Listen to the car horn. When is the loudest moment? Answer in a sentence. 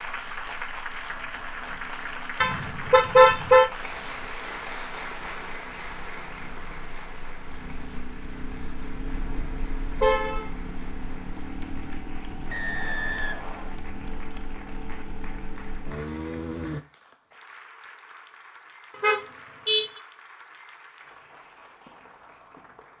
The loudest moment of the car horn is at 3 seconds.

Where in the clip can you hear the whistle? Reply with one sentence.
The whistle can be heard from 12.5 to 13.8 s.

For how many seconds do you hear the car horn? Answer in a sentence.
The car horn can be heard for 4 seconds in total.